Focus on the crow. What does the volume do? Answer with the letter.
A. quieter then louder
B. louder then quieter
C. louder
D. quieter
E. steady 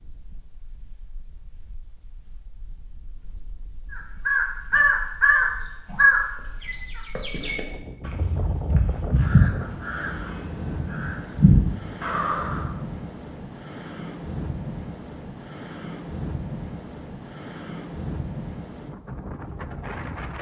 A.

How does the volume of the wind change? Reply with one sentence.
The volume of the wind goes up.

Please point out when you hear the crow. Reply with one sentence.
The crow can be heard from 3.9 to 12.7 s.